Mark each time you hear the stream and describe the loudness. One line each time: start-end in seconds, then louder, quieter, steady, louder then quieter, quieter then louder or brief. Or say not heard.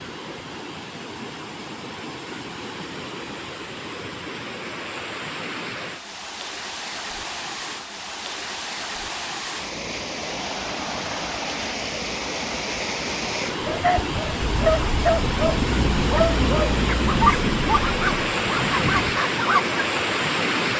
0.0-20.7 louder.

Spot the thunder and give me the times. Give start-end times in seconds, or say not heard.
14.7-19.2.